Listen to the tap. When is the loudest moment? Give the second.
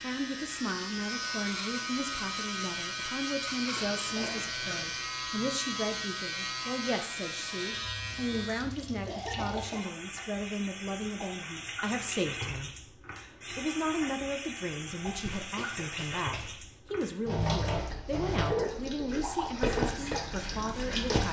20 s.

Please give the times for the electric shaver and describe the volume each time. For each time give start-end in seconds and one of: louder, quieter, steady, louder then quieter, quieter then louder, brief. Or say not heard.
0.0-8.6 steady
19.8-21.2 brief.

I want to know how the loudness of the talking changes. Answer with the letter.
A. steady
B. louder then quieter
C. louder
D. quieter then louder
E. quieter
A.